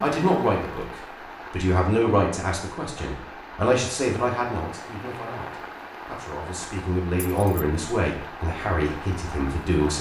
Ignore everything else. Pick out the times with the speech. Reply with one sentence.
The speech can be heard from 0.0 to 9.9 s.